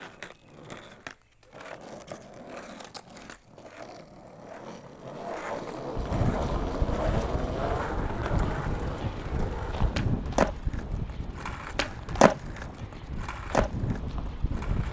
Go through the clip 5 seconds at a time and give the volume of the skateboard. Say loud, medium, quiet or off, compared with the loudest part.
quiet, loud, loud.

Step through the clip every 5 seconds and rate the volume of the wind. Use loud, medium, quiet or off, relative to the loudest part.
off, loud, loud.